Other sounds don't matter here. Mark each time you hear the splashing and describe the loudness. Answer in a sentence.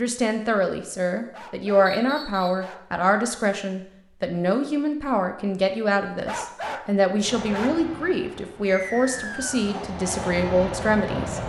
The splashing can't be heard in this clip.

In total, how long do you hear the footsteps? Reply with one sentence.
The footsteps can't be heard in this clip.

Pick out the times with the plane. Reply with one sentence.
The plane can be heard from 7.2 to 11.4 s.